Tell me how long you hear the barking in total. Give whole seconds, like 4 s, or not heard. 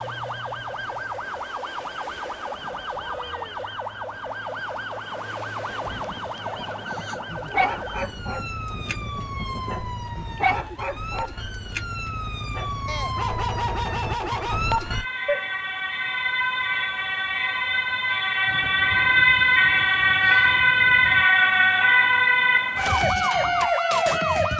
9 s.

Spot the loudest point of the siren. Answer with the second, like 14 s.
21 s.